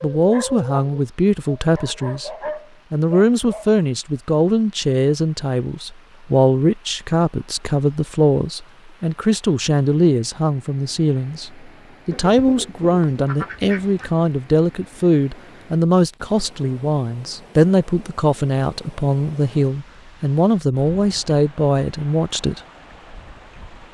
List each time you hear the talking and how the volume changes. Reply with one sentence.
The talking can be heard briefly from 0.0 to 2.3 s; and from 2.9 to 22.6 s, at a steady volume.